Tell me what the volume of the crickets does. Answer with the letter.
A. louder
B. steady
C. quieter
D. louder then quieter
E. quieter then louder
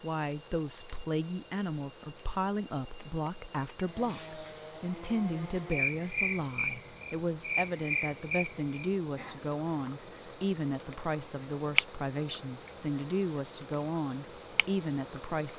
C.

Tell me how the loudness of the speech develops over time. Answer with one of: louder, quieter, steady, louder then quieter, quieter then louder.
steady.